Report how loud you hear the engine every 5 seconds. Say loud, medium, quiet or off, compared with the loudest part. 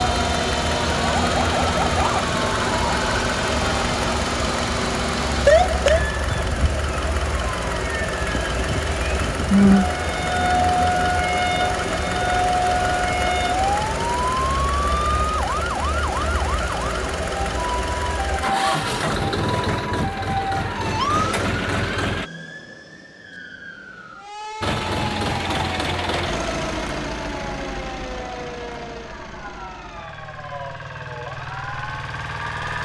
loud, loud, loud, loud, loud, loud, medium.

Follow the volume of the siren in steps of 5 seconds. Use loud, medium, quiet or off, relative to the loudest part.
loud, loud, loud, medium, medium, quiet, quiet.